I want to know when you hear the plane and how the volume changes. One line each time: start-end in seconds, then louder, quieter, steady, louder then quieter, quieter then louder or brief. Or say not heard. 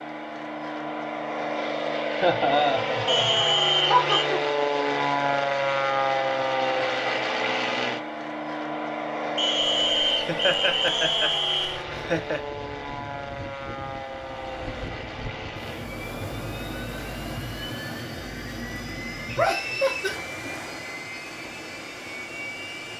0.0-22.9 quieter.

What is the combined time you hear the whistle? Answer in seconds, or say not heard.
4 s.